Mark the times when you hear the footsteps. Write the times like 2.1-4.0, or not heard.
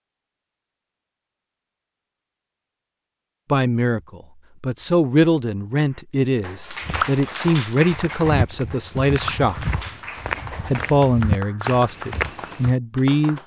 6.8-12.8.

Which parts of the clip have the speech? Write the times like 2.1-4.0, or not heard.
3.5-9.6, 10.7-13.4.